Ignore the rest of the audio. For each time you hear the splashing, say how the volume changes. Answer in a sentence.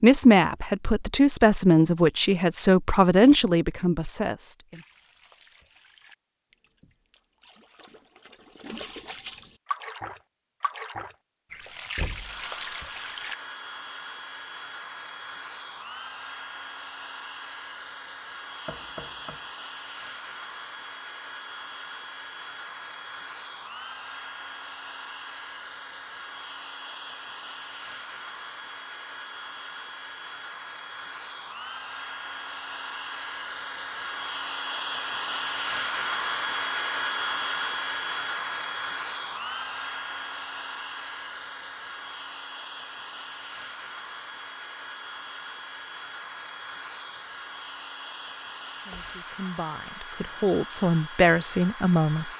You can hear the splashing from 4.7 to 13.3 s, getting louder.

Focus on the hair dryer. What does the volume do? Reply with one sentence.
The volume of the hair dryer goes up, then down.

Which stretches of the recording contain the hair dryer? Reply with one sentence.
You can hear the hair dryer from 12.2 to 52.3 s.